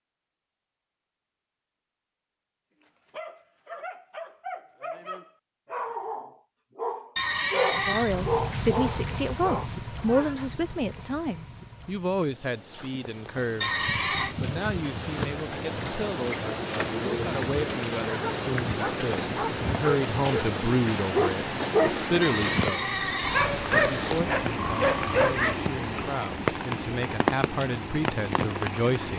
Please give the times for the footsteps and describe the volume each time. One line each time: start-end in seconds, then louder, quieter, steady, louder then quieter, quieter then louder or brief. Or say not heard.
not heard.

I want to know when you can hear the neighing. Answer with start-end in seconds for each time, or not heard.
7.2-8.2, 13.6-14.3, 22.2-23.6.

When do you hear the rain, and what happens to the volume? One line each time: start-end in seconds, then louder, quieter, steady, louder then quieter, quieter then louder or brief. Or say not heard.
7.7-29.1 louder.